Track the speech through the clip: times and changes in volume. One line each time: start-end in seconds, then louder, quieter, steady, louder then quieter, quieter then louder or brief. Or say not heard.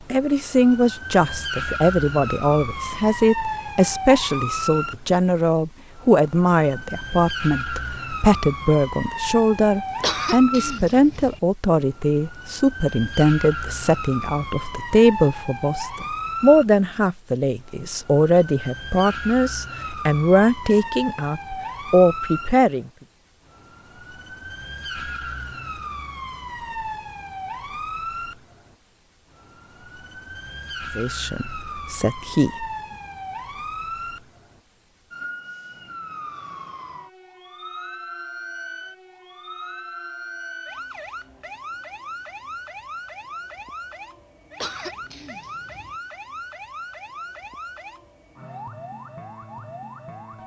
0.1-22.9 steady
30.9-32.5 brief.